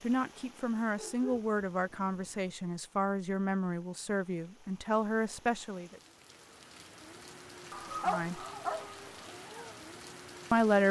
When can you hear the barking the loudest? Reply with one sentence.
The loudest moment of the barking is at 8 seconds.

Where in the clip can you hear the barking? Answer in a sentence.
You can hear the barking from 0.9 to 2.5 s and from 7.7 to 9.3 s.